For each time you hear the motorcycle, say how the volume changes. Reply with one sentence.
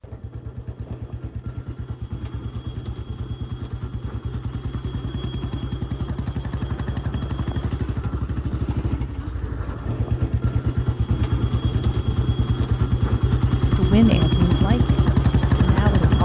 The motorcycle can be heard from 0.0 to 16.2 s, getting louder.